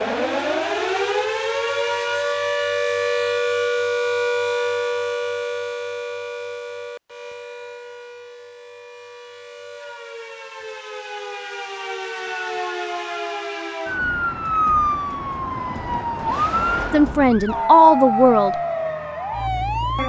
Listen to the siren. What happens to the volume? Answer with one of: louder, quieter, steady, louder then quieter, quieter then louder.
quieter then louder.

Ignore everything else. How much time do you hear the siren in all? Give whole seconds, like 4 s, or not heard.
20 s.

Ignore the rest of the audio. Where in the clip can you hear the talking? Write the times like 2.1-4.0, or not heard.
16.9-18.6.